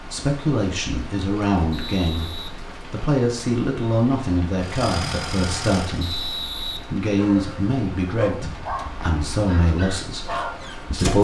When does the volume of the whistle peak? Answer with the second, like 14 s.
6 s.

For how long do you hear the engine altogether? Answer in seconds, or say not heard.
2 s.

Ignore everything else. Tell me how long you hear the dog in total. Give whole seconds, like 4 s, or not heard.
4 s.